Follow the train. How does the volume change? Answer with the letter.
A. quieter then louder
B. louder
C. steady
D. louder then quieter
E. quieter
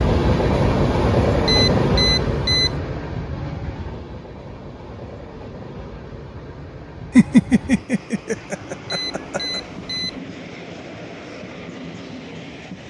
E.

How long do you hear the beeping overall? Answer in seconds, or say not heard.
3 s.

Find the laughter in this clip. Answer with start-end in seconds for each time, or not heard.
7.2-9.6.